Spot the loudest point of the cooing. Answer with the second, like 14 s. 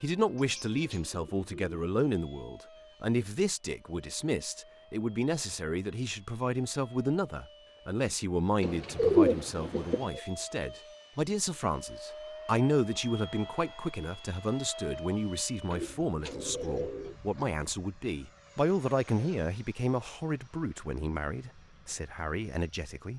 9 s.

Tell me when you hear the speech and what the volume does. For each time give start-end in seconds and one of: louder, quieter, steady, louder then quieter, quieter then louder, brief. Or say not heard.
0.0-23.1 steady.